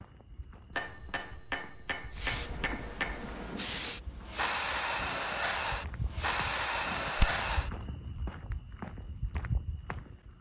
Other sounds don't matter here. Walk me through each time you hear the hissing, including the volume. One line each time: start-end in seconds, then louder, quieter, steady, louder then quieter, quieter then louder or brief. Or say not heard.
2.1-7.7 louder.